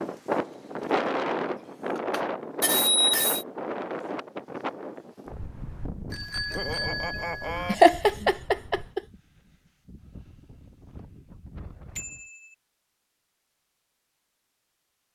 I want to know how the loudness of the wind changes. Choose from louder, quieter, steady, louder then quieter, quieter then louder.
quieter.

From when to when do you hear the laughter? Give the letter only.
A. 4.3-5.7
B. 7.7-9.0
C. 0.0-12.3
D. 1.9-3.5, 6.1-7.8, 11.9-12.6
B.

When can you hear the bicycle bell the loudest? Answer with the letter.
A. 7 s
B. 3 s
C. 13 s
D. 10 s
B.